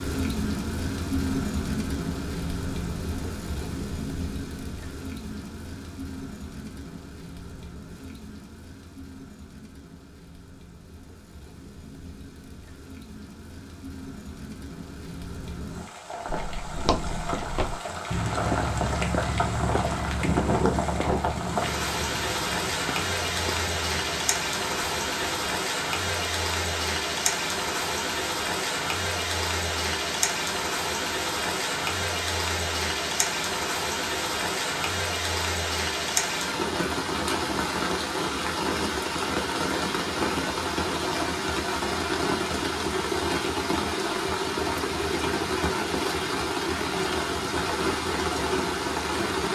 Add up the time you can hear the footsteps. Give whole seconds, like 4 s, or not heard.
9 s.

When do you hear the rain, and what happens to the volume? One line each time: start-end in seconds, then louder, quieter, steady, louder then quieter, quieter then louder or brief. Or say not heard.
0.0-49.5 louder.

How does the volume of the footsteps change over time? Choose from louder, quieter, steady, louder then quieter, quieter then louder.
quieter.